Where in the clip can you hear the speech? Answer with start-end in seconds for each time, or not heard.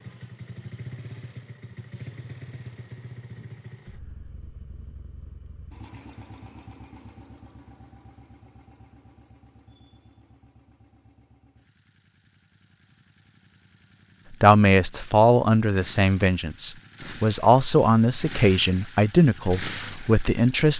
14.3-20.7.